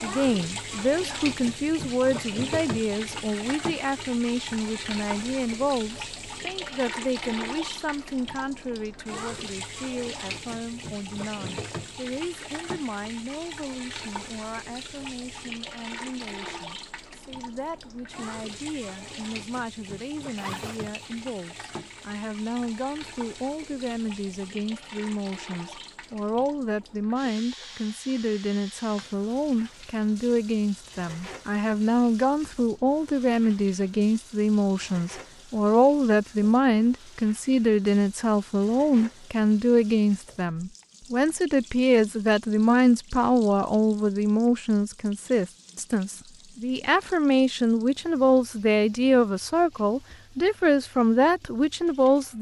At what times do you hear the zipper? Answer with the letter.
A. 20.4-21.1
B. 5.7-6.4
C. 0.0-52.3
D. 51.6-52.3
A.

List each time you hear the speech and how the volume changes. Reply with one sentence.
The speech can be heard from 0.0 to 52.3 s, getting quieter then louder.